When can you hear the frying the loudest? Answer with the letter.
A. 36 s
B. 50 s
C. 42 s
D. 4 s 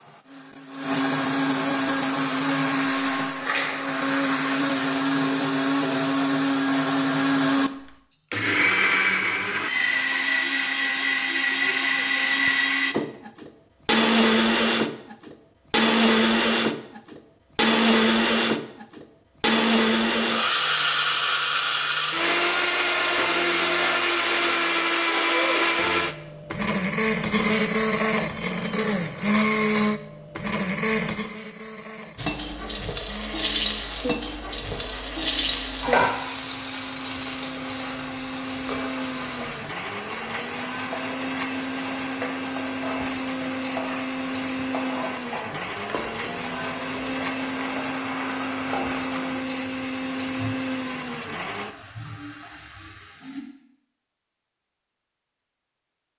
A.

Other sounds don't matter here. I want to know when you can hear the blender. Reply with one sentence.
You can hear the blender from 0.0 to 51.8 s.